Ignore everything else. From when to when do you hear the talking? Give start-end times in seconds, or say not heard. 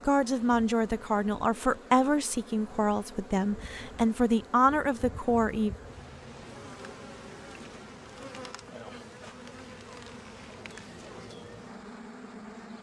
0.1-5.8.